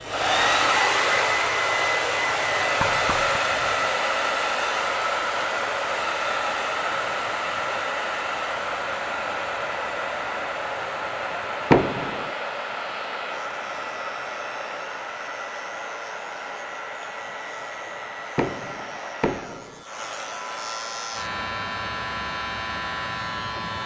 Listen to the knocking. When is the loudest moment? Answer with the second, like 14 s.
12 s.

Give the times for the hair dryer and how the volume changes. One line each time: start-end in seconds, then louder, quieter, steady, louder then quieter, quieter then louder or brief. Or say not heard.
0.0-23.8 quieter.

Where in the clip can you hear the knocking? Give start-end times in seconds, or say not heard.
2.8-3.4, 11.7-12.3, 18.4-19.9.